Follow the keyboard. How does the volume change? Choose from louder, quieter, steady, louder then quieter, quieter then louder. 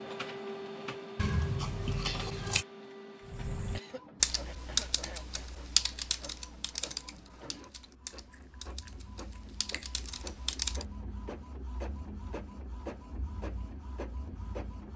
quieter.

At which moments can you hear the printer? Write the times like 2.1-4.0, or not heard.
0.0-14.9.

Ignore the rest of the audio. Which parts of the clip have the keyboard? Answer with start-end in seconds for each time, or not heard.
3.2-10.8.